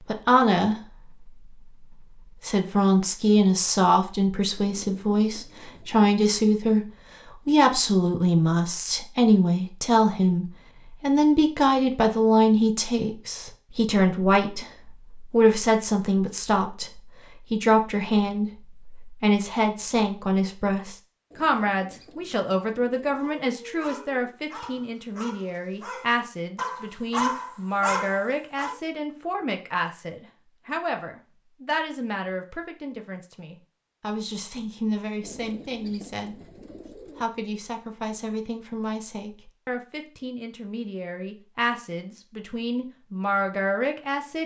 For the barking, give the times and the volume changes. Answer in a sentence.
You can hear the barking from 23.1 to 28.8 s, getting louder.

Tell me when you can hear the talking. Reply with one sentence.
You can hear the talking from 0.1 to 1.3 s, from 2.4 to 6.8 s, from 7.5 to 36.4 s and from 37.1 to 44.4 s.